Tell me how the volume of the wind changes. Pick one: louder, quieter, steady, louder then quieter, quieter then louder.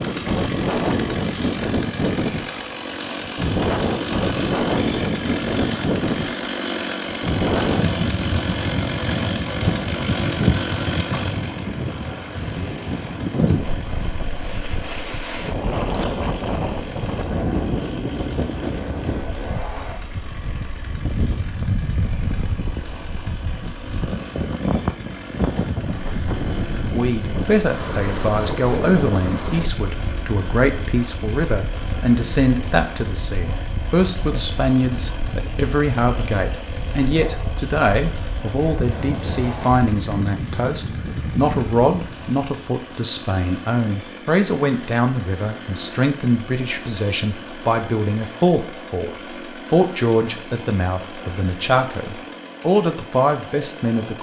quieter.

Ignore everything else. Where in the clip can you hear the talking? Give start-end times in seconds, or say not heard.
26.9-54.1.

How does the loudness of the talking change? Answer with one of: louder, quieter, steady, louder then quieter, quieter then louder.
steady.